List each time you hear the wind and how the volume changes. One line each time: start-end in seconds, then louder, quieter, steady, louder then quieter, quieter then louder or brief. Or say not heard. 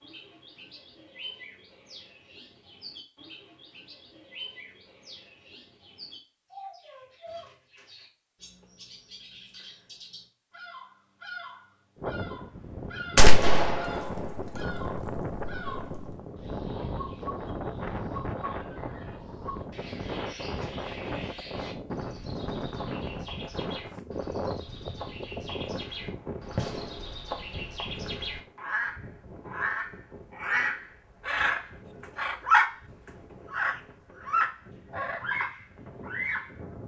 11.9-36.8 quieter.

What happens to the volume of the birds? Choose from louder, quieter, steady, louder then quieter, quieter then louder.
louder.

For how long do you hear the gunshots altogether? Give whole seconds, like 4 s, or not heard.
3 s.